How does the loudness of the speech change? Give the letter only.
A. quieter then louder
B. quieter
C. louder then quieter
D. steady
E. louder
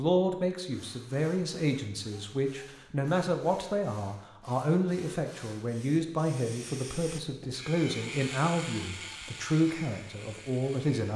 D.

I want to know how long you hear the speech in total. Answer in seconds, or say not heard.
11 s.